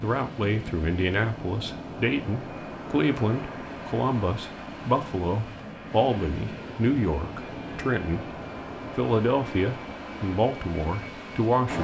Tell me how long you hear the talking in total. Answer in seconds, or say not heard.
11 s.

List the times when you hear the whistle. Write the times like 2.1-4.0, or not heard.
not heard.